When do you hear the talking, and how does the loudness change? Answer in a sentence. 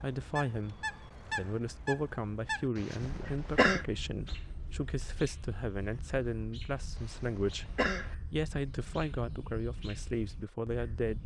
You can hear the talking from 0.0 to 11.2 s, at a steady volume.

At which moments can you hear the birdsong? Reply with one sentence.
You can hear the birdsong from 0.0 to 11.2 s.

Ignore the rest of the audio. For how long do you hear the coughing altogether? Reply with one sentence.
You can hear the coughing for 2 seconds altogether.